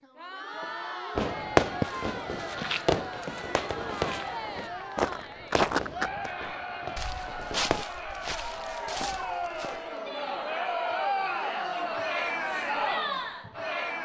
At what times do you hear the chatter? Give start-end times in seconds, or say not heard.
0.0-14.0.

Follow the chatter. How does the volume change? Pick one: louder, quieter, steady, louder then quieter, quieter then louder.
louder.